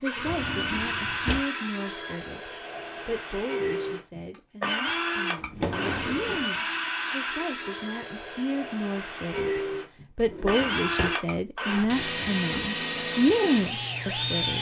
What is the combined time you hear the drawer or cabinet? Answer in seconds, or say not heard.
3 s.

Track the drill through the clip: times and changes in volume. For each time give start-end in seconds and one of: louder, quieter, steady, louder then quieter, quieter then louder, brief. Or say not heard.
0.0-14.5 steady.